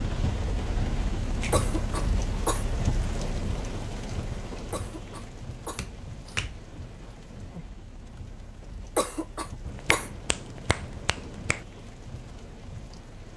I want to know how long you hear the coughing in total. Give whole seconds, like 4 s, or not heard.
4 s.